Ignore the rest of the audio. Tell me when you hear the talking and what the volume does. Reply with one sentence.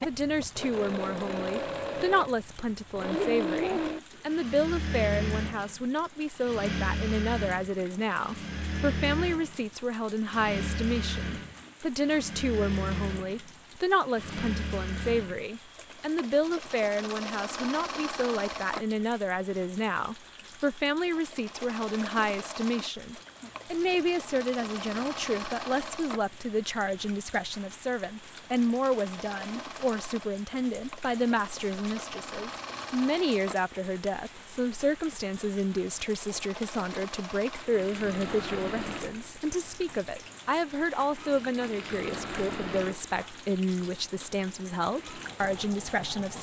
The talking can be heard from 0.0 to 46.3 s, at a steady volume.